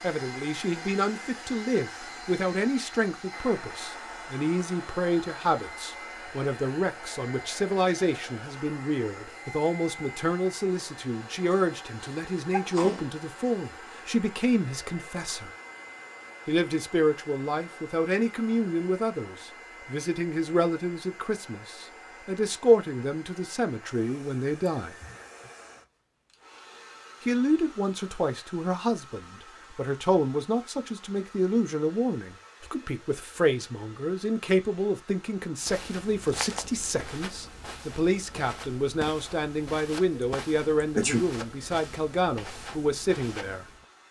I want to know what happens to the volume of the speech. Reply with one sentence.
The volume of the speech stays about the same.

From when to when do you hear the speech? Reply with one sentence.
The speech can be heard from 0.0 to 15.5 s, from 16.4 to 24.9 s and from 27.2 to 43.6 s.